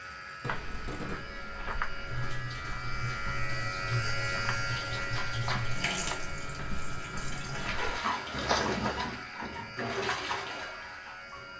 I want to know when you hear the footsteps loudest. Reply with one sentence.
The loudest moment of the footsteps is at 9 seconds.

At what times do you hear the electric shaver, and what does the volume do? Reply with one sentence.
The electric shaver can be heard from 0.0 to 11.5 s, getting louder then quieter.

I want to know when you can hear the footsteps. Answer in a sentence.
You can hear the footsteps from 0.5 to 9.1 s.